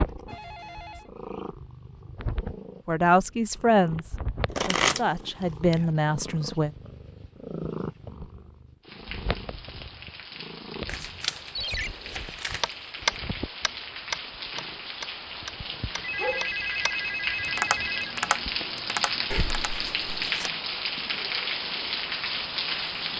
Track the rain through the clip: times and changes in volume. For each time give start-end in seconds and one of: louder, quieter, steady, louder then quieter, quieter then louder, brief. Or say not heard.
8.8-23.1 louder.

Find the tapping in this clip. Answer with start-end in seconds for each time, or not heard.
12.6-19.7.